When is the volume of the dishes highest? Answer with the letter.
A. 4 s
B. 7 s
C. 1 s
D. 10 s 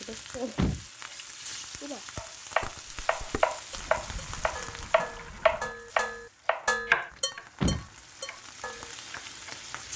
B.